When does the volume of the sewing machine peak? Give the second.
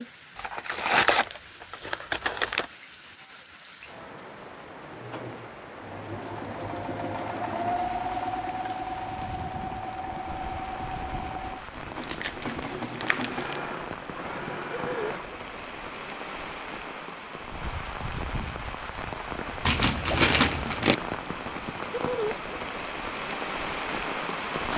8 s.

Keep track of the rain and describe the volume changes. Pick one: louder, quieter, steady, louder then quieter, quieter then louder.
louder.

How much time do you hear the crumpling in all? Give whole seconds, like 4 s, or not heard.
5 s.